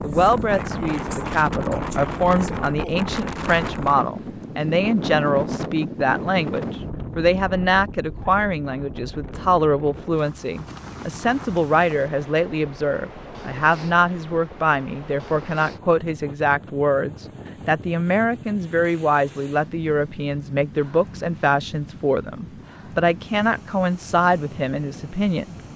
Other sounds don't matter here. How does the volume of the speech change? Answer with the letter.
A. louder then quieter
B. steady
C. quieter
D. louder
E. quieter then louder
B.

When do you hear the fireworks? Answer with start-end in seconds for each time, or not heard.
not heard.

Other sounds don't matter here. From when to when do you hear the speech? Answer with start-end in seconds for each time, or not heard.
0.0-25.6.